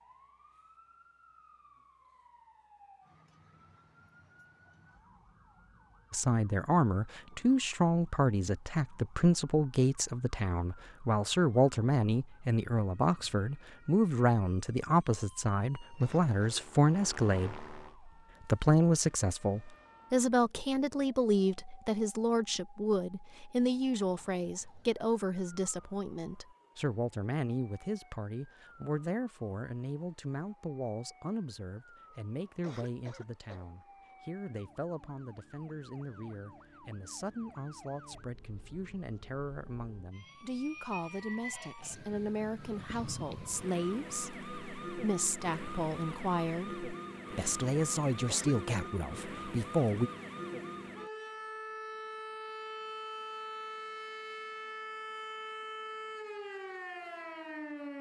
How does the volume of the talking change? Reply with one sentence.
The volume of the talking goes down, then up.